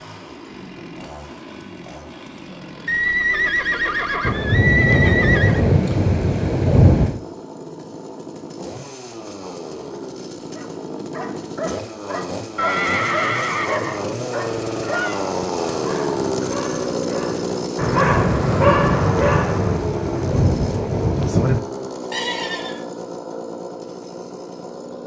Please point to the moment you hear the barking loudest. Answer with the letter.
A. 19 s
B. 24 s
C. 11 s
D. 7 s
A.